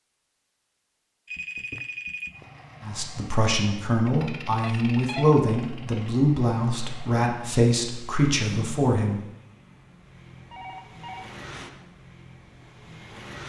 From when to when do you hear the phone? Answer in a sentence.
You can hear the phone from 1.2 to 2.5 s, from 4.6 to 5.3 s and from 10.3 to 11.3 s.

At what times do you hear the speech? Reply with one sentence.
The speech can be heard from 2.8 to 9.2 s.